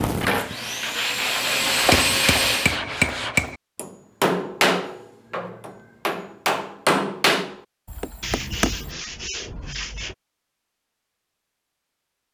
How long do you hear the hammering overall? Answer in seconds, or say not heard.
7 s.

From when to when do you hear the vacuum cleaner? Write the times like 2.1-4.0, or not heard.
0.0-2.8.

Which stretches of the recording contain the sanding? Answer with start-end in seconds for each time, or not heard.
0.8-3.5, 8.2-10.2.